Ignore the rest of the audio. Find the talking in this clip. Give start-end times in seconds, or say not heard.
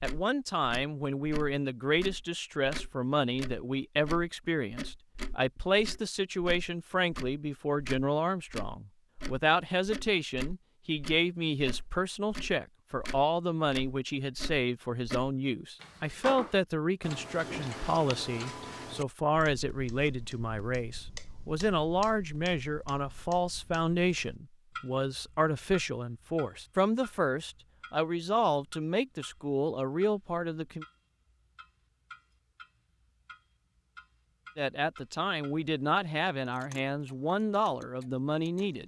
0.0-30.9, 34.5-38.8.